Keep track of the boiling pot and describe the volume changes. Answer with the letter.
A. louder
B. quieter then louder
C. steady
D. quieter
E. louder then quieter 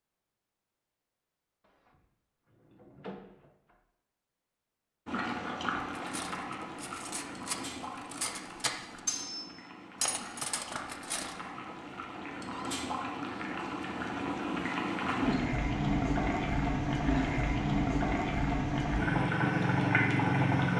B.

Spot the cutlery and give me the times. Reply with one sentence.
You can hear the cutlery from 5.9 to 11.3 s.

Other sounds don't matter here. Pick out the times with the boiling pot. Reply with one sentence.
You can hear the boiling pot from 5.0 to 20.7 s.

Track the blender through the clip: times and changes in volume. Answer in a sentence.
You can't hear the blender here.